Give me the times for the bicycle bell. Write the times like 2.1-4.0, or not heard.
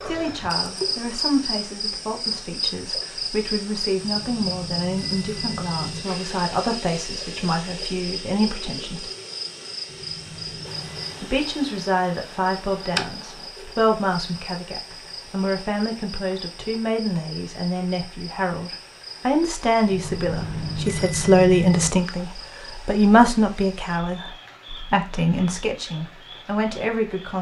4.0-6.0, 9.8-11.3, 19.9-21.9.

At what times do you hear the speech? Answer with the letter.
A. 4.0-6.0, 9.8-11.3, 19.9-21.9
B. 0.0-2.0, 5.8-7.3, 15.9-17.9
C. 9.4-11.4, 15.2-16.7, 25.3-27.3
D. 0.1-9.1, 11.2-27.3
D.